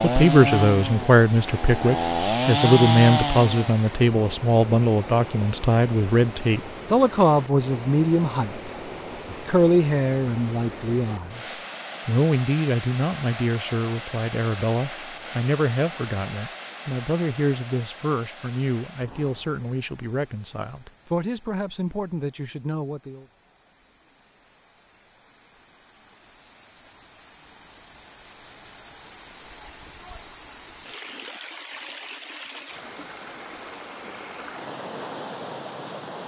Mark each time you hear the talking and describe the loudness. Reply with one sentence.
You can hear the talking from 0.0 to 23.2 s, getting quieter.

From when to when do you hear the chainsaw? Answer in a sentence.
You can hear the chainsaw from 0.0 to 3.8 s.